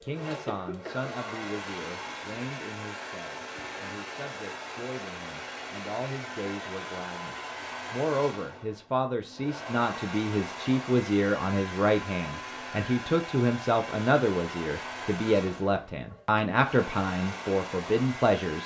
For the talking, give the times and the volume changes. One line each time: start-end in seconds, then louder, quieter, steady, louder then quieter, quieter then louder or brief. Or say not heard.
0.0-18.6 louder.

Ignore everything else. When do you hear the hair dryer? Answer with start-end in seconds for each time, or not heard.
0.0-18.6.